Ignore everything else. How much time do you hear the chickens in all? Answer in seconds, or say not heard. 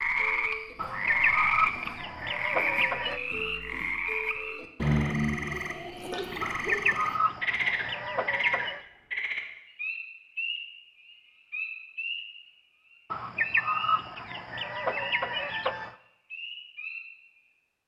8 s.